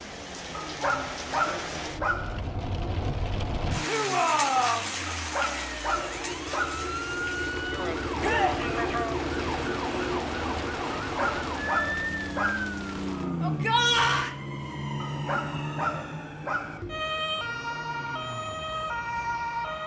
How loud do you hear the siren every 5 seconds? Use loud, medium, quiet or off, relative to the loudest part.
off, loud, loud, loud.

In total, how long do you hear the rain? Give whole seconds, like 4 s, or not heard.
13 s.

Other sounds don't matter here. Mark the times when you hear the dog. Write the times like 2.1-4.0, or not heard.
0.6-2.4, 5.2-6.9, 11.0-12.7, 15.0-16.9.